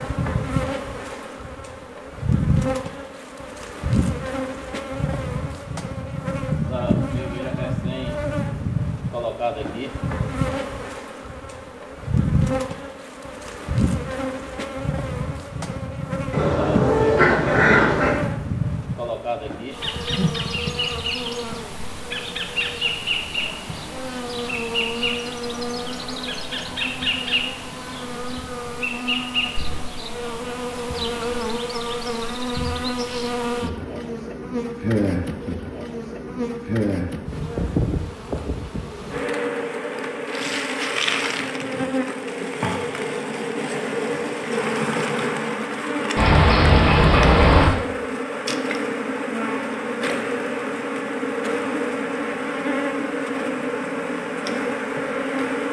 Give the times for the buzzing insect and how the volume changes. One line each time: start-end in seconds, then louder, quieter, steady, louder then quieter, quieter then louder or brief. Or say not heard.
0.0-55.6 steady.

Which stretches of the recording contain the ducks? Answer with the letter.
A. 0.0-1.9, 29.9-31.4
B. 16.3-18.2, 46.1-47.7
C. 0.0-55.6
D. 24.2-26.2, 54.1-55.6
B.